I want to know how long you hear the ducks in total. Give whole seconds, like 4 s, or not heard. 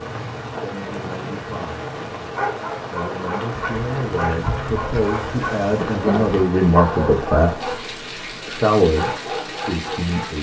3 s.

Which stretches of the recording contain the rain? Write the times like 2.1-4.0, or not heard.
0.0-10.3.